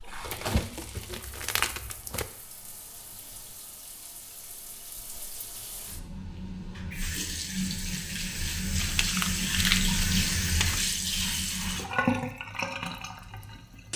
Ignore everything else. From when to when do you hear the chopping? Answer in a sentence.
You can't hear the chopping here.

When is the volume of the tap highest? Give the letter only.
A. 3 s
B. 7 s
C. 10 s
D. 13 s
C.